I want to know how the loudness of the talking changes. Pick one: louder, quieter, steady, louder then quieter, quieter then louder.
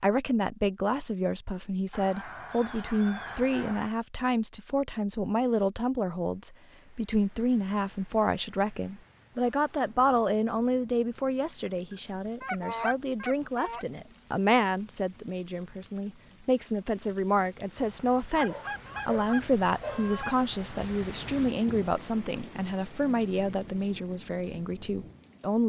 steady.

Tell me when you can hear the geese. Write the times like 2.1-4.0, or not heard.
1.9-4.0, 11.9-13.8, 18.4-20.4.